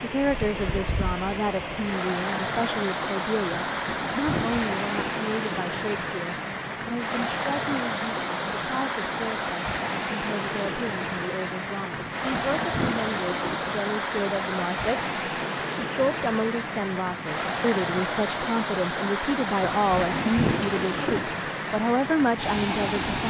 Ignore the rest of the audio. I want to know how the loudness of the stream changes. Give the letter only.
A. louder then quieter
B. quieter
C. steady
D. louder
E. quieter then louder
C.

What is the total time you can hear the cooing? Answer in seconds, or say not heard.
5 s.